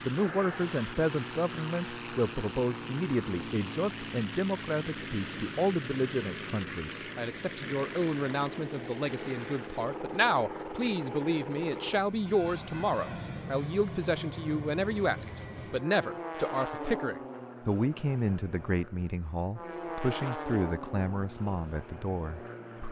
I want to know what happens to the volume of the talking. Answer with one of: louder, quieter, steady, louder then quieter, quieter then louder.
steady.